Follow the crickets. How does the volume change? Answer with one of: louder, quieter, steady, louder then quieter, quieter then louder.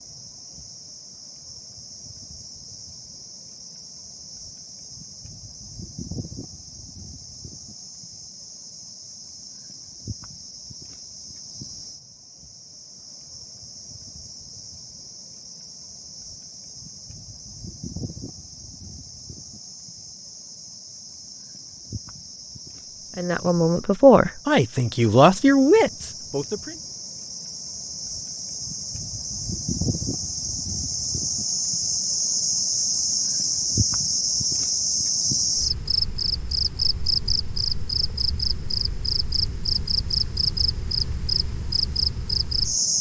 louder.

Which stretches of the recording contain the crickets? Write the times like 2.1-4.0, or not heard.
0.0-42.9.